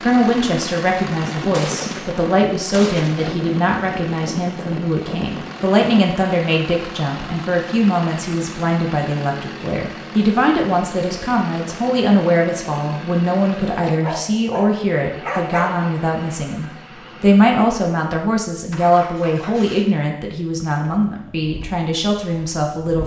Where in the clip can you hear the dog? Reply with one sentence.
You can hear the dog from 13.8 to 15.9 s.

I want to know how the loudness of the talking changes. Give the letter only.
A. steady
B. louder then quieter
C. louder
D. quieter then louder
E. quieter
A.